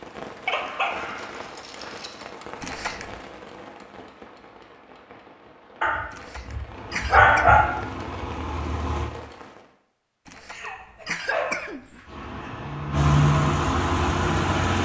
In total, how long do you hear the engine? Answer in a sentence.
You can hear the engine for 5 seconds altogether.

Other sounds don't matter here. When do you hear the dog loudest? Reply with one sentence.
The volume of the dog peaks at 7 seconds.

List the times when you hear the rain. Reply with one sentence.
The rain can be heard from 0.0 to 9.8 s.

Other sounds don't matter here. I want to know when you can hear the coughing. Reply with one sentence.
The coughing can be heard from 2.6 to 3.2 s, from 6.1 to 7.5 s and from 10.2 to 12.1 s.